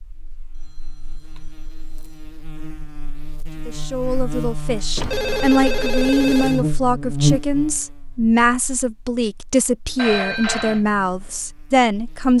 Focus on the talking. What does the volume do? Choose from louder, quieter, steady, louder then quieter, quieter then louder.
steady.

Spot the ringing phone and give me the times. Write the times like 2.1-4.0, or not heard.
0.5-2.3, 5.0-6.7, 9.9-10.8.